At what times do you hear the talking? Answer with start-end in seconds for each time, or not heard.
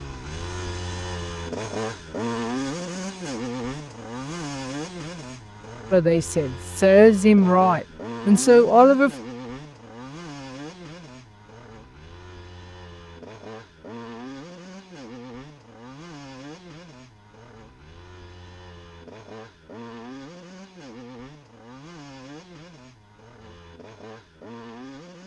5.9-9.1.